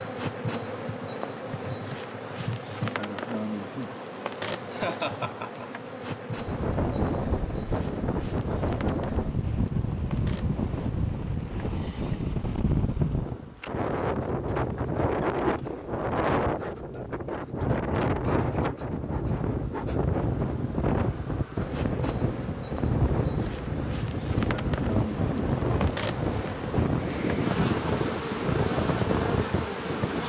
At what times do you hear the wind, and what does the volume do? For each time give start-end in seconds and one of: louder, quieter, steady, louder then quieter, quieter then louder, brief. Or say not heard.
6.3-30.2 steady.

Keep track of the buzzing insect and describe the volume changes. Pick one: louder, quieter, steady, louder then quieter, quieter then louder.
quieter then louder.